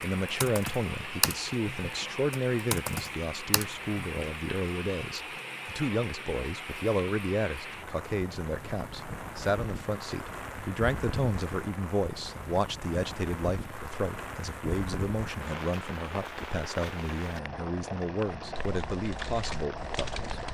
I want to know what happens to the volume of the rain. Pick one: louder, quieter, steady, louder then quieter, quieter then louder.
steady.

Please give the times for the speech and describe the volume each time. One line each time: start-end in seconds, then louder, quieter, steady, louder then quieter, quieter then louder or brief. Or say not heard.
0.0-20.4 steady.